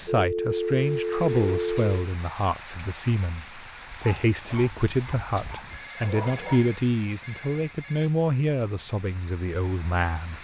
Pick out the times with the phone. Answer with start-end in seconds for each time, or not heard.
0.1-1.9, 5.8-8.1.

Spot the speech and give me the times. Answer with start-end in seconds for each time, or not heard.
0.0-10.3.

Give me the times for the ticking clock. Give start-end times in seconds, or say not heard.
not heard.